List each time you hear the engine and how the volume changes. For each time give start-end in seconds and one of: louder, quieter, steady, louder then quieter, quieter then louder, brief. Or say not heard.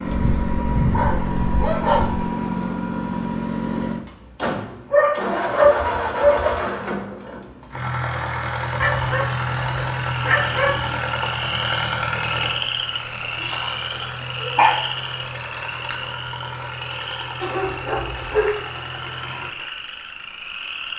0.0-19.5 quieter.